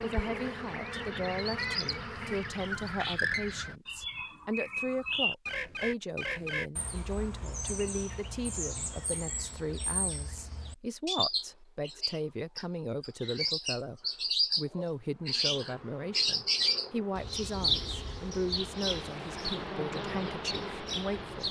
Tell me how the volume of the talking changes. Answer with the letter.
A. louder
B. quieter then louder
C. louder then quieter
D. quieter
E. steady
E.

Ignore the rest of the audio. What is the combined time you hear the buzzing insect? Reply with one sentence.
The buzzing insect can be heard for 9 seconds in total.